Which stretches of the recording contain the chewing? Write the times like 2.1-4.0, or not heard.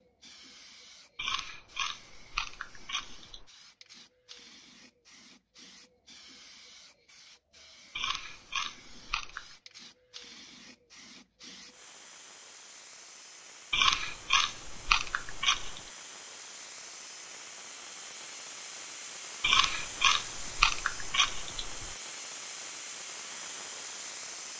1.1-3.5, 8.0-9.6, 13.7-15.8, 19.4-21.9.